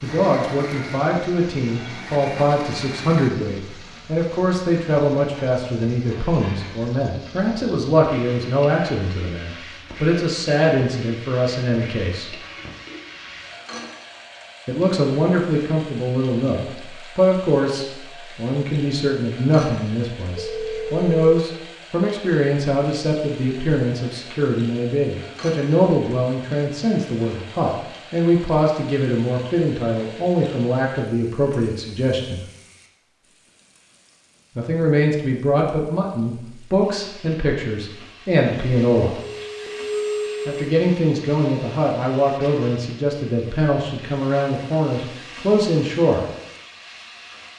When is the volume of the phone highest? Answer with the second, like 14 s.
40 s.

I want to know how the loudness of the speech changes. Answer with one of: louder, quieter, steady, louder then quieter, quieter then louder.
steady.